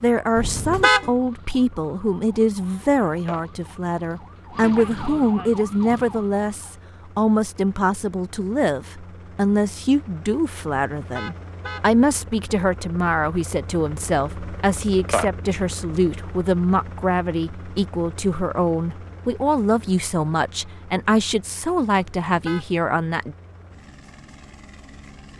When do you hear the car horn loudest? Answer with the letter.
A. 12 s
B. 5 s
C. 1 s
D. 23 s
C.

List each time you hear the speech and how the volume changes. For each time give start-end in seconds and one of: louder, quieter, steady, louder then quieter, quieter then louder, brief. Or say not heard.
0.0-23.4 steady.